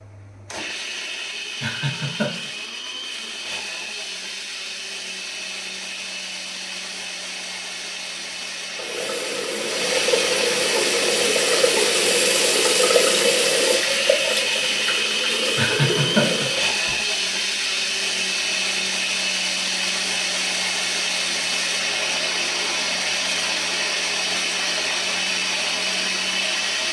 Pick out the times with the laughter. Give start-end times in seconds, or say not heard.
1.6-2.5, 15.6-16.9.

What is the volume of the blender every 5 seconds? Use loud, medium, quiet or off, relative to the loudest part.
medium, medium, loud, loud, loud, loud.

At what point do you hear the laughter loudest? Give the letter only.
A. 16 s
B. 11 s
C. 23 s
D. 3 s
A.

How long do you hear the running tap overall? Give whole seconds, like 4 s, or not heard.
8 s.